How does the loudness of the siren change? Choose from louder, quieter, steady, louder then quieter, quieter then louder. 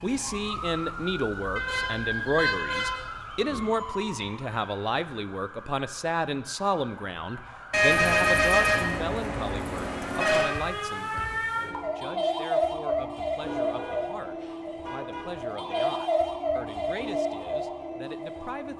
quieter then louder.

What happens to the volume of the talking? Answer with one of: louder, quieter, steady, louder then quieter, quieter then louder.
quieter.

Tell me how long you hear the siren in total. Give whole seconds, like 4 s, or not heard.
19 s.